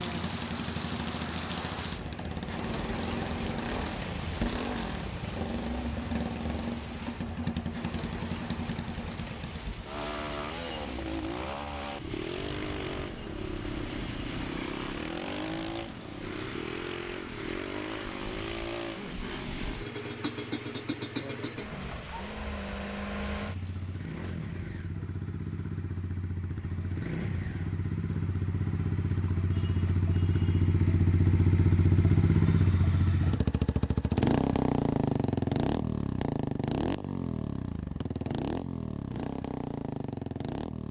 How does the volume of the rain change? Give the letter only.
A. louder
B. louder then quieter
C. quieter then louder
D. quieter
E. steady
D.